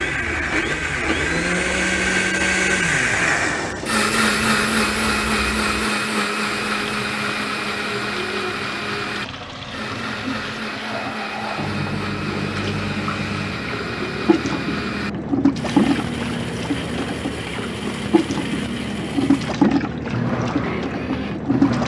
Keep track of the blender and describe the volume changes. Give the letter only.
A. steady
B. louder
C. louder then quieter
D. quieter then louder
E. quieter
E.